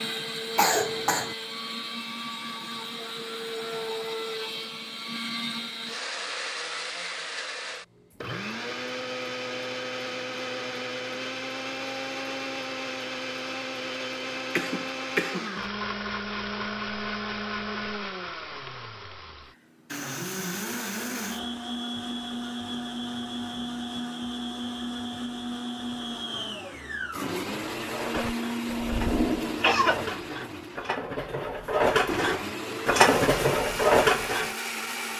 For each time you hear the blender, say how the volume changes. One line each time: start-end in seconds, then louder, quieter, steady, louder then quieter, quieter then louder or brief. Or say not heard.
0.0-35.1 steady.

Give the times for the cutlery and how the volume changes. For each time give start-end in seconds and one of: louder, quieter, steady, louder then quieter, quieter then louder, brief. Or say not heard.
27.4-35.1 louder.